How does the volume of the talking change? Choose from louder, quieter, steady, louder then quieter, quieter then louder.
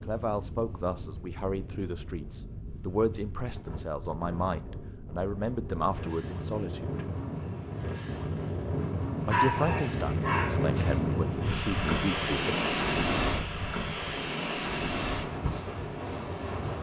steady.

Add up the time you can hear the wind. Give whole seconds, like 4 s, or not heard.
17 s.